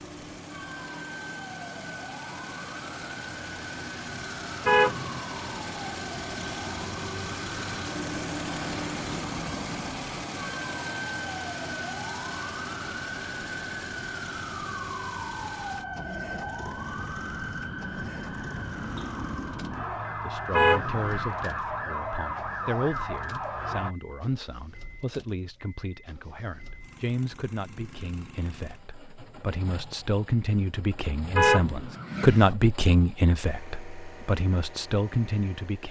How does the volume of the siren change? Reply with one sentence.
The loudness of the siren goes up.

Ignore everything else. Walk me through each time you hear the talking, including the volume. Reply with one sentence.
You can hear the talking from 20.1 to 35.8 s, getting louder.